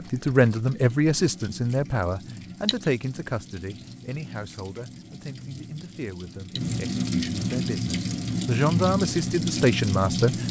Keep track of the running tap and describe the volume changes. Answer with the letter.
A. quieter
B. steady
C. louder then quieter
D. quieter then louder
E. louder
E.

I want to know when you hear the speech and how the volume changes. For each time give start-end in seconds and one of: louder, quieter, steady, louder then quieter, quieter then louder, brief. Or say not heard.
0.0-10.3 quieter then louder.